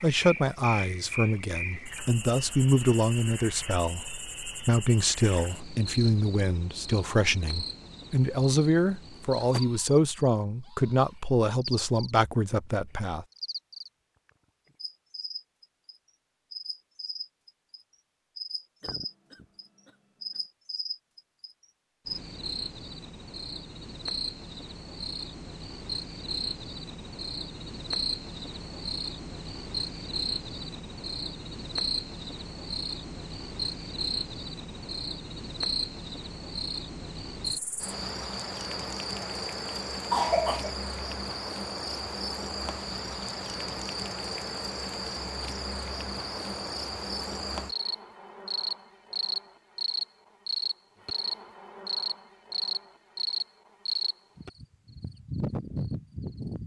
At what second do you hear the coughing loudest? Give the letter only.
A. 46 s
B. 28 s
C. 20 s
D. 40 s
D.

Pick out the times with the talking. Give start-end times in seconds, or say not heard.
0.0-13.2.